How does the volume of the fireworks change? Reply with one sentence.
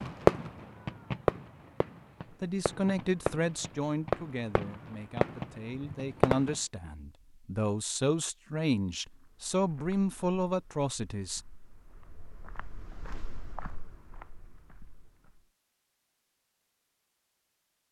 The loudness of the fireworks goes down, then up.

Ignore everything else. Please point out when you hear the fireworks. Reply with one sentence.
The fireworks can be heard from 0.0 to 6.5 s.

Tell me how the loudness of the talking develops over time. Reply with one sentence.
The volume of the talking goes down, then up.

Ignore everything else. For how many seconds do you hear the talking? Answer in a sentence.
You can hear the talking for 9 seconds altogether.